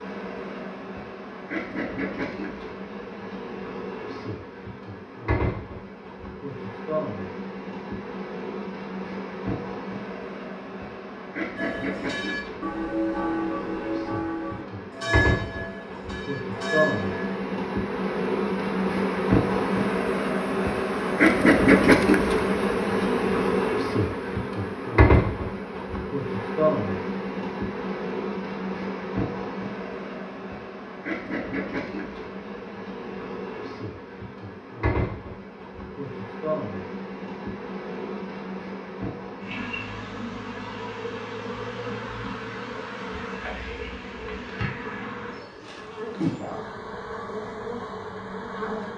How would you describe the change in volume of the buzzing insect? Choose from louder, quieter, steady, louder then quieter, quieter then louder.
louder then quieter.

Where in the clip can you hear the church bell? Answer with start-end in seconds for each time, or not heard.
11.6-17.4.